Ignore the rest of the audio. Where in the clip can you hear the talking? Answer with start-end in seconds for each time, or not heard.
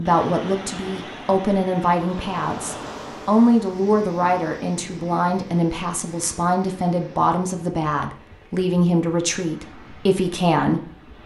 0.0-11.2.